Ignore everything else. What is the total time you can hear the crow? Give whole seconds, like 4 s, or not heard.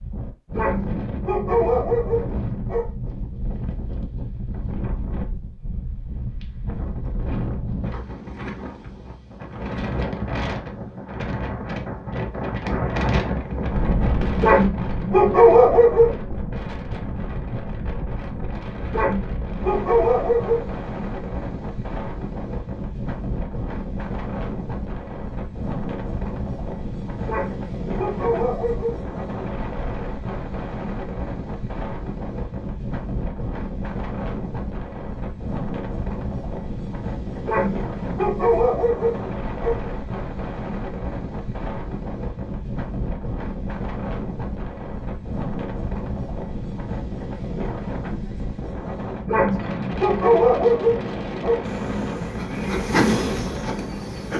not heard.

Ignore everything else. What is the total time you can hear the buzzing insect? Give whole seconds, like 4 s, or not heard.
3 s.